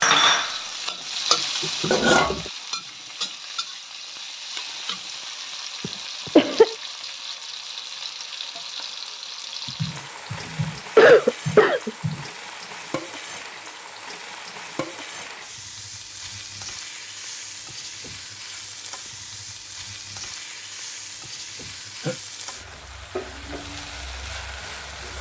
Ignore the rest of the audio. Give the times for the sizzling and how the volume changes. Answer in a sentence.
You can hear the sizzling from 0.2 to 25.1 s, getting quieter.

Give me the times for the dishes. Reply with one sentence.
You can hear the dishes from 0.0 to 2.5 s.